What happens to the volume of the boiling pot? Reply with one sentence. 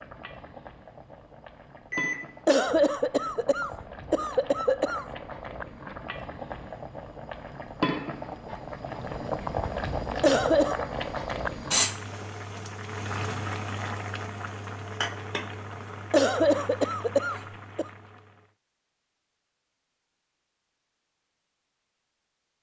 The volume of the boiling pot goes up, then down.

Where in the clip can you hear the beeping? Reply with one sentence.
You can hear the beeping from 1.9 to 2.5 s.